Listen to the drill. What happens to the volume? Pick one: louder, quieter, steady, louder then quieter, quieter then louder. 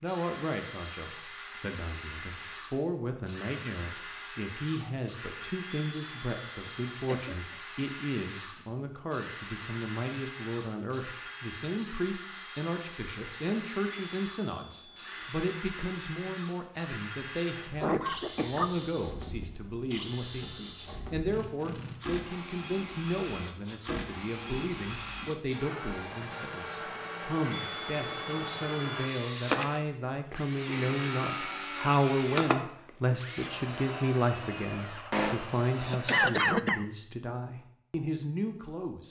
louder.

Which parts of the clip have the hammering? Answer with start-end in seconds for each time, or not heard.
not heard.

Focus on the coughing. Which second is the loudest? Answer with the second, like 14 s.
36 s.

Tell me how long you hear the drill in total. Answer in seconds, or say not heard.
36 s.